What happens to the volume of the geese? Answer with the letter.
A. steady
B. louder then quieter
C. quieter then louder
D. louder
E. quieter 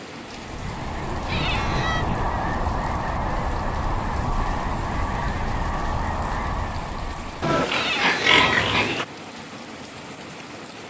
A.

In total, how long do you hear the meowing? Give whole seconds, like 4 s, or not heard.
2 s.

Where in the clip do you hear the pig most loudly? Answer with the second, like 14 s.
8 s.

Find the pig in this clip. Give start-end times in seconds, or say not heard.
0.5-2.4, 7.4-9.1.